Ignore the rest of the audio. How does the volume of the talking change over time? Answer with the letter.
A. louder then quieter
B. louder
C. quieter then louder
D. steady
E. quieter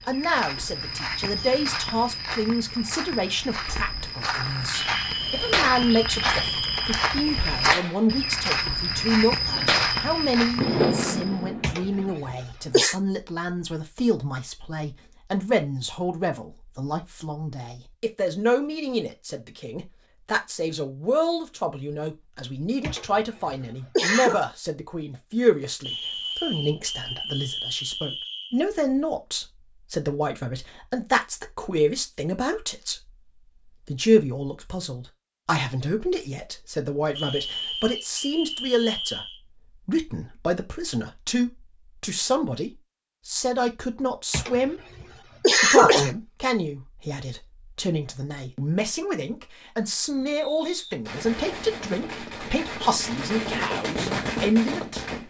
D.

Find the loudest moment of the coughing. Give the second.
46 s.